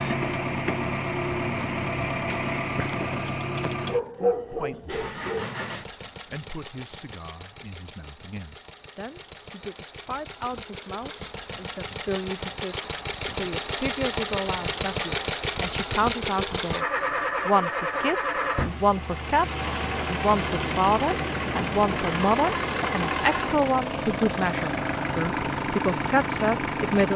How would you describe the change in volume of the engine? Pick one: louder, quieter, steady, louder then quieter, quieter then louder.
quieter then louder.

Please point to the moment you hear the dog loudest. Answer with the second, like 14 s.
4 s.